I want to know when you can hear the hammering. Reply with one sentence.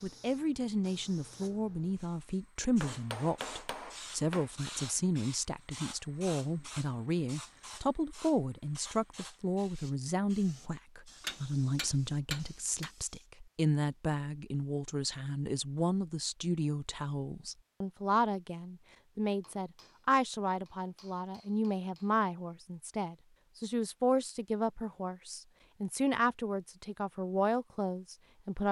You can hear the hammering from 2.8 to 4.5 s, from 11.2 to 12.9 s and from 19.4 to 22.1 s.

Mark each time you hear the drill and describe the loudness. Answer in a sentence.
You can't hear the drill here.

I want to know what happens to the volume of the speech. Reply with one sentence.
The loudness of the speech stays about the same.